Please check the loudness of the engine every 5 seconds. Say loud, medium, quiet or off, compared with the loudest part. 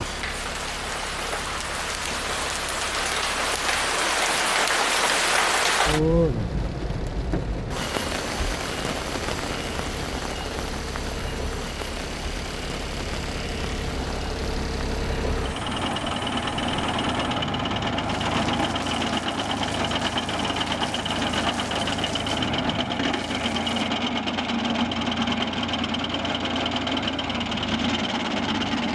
quiet, quiet, medium, loud, loud, loud.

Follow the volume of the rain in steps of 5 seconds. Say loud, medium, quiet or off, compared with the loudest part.
loud, loud, medium, quiet, quiet, off.